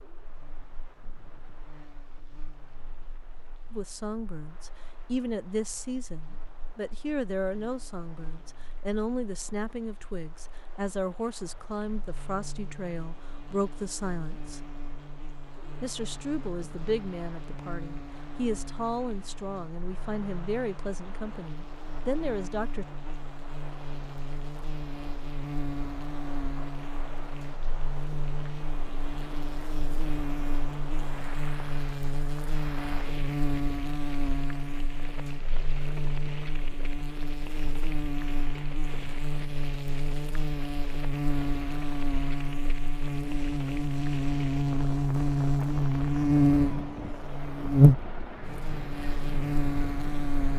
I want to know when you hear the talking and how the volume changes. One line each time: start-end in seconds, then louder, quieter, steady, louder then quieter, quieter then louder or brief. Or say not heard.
3.7-14.6 steady
15.8-22.9 steady.